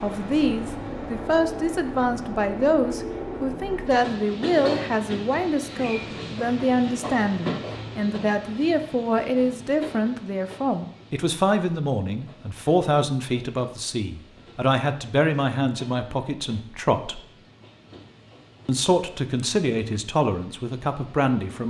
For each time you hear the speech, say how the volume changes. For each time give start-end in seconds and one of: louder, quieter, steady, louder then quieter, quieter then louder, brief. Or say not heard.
0.0-17.2 steady
18.6-21.6 brief.